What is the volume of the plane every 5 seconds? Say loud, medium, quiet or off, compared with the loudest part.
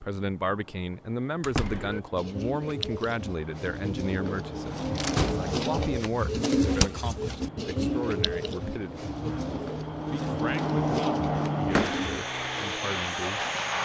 quiet, medium, loud.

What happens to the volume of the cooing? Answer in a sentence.
The volume of the cooing goes up, then down.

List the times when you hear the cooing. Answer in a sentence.
The cooing can be heard from 1.6 to 12.2 s.